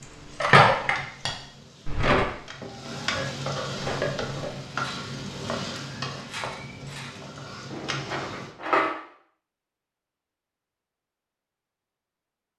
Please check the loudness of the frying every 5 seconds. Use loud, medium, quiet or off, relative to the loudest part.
loud, loud, off.